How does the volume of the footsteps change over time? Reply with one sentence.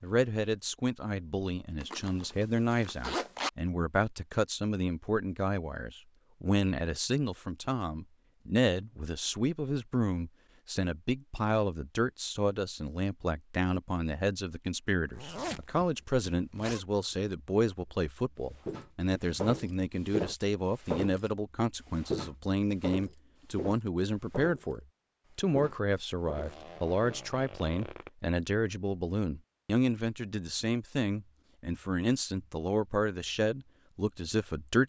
The loudness of the footsteps goes down.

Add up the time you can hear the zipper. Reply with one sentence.
You can hear the zipper for 5 seconds altogether.